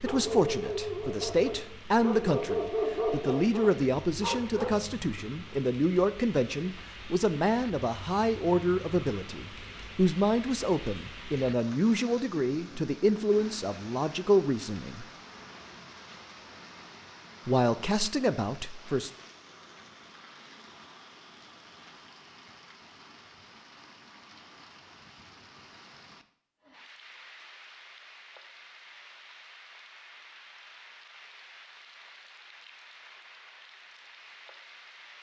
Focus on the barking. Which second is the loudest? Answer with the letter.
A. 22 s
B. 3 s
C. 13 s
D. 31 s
B.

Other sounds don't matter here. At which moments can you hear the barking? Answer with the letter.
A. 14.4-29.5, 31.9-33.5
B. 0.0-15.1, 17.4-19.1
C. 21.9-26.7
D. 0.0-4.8
D.